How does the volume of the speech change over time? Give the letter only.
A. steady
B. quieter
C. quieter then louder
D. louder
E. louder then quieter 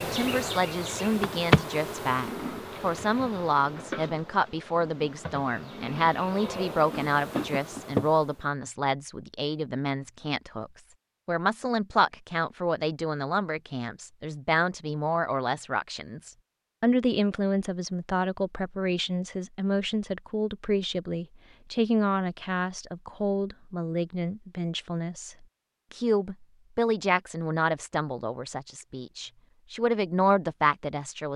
A.